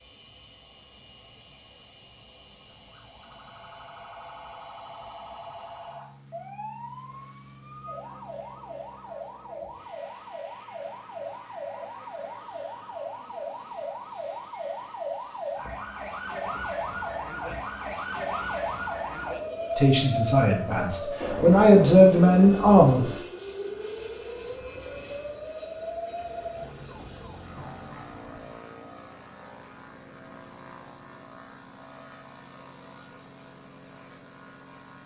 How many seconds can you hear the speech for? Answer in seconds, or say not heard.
3 s.